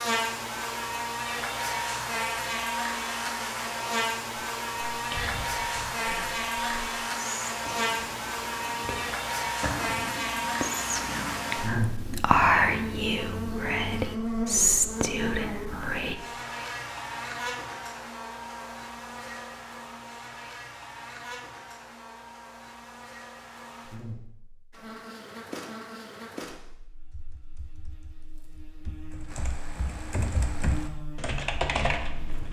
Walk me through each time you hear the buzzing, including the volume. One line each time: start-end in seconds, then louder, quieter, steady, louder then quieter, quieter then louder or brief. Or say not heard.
0.0-32.4 quieter.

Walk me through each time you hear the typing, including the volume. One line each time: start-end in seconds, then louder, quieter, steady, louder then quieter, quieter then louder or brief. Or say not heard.
27.1-32.4 louder.